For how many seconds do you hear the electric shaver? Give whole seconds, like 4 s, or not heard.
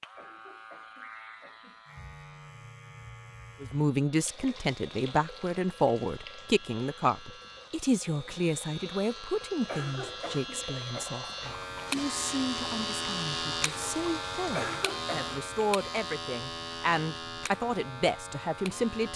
19 s.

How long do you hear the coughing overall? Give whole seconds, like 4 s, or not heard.
4 s.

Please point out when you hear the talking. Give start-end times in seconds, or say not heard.
3.6-19.1.